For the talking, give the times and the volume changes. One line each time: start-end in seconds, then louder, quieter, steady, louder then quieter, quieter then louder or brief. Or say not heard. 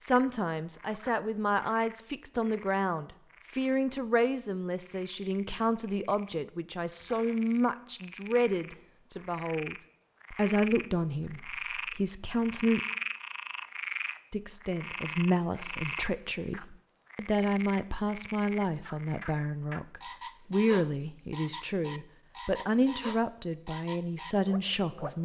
0.0-12.8 steady
14.3-25.2 steady.